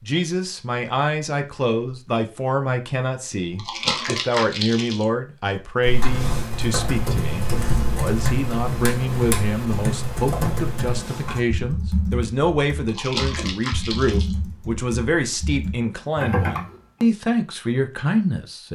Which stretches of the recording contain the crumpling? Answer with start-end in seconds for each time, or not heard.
3.5-5.0, 12.8-14.3.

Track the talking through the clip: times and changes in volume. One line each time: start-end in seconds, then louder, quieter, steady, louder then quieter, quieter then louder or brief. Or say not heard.
0.0-18.7 steady.